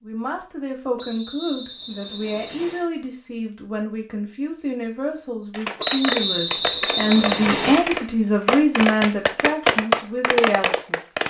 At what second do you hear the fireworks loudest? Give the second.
10 s.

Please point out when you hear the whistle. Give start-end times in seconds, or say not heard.
0.9-2.9, 5.8-7.8.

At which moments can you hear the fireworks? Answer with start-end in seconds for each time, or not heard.
5.5-11.2.